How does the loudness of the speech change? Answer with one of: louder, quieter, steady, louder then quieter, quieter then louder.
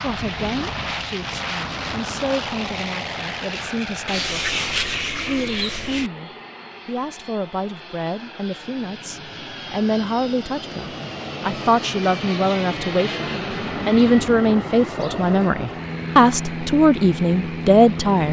louder.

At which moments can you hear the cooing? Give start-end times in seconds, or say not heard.
4.0-6.1, 13.6-15.5.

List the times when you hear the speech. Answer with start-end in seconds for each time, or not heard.
0.0-18.2.